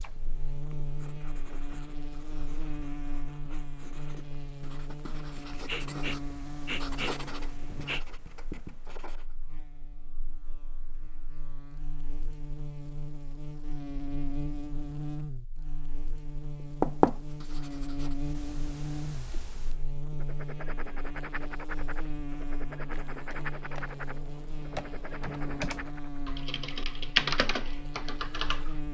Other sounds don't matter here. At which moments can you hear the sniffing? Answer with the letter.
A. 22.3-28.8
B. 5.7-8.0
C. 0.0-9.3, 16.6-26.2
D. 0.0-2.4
B.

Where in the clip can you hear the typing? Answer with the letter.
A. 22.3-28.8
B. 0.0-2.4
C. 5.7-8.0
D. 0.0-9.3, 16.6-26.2
A.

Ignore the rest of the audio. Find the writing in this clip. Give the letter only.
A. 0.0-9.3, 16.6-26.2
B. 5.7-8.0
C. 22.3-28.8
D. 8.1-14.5
A.